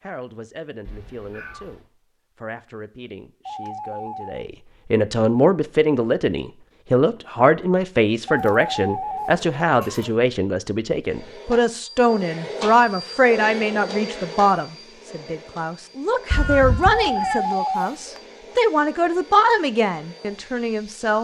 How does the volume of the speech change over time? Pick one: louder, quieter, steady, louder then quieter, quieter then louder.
louder.